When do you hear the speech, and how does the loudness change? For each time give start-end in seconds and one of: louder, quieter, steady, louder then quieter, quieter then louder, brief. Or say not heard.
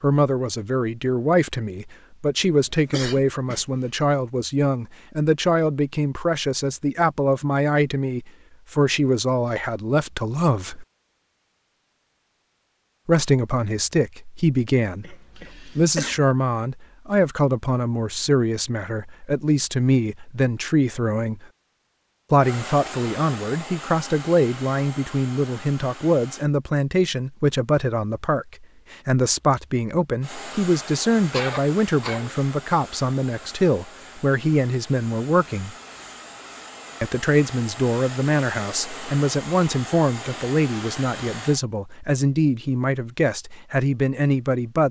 0.0-10.8 steady
13.1-21.4 steady
22.3-35.7 steady
37.0-44.8 steady.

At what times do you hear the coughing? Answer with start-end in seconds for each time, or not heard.
2.6-3.9, 15.0-16.2, 31.3-32.4.